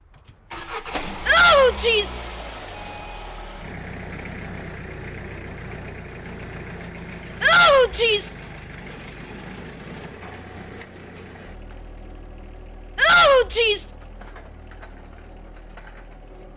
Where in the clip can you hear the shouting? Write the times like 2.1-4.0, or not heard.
1.2-2.2, 7.4-8.3, 12.9-13.9.